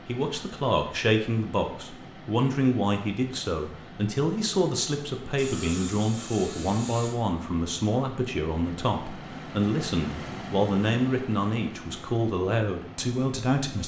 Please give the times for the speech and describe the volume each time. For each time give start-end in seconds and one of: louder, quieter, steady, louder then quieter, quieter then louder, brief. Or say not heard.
0.1-13.8 steady.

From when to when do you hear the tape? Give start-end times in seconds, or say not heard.
not heard.